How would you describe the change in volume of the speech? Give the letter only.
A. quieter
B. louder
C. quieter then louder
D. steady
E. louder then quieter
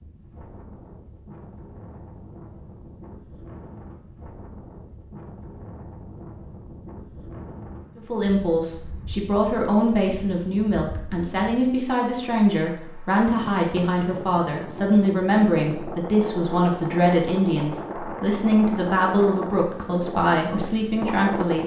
D.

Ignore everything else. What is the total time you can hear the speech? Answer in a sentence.
You can hear the speech for 14 seconds altogether.